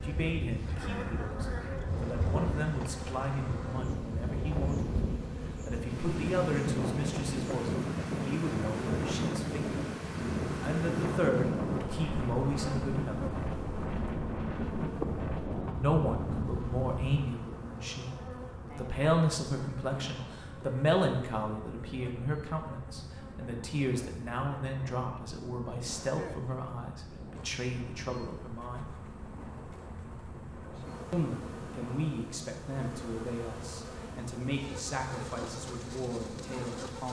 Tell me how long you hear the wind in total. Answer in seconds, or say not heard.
37 s.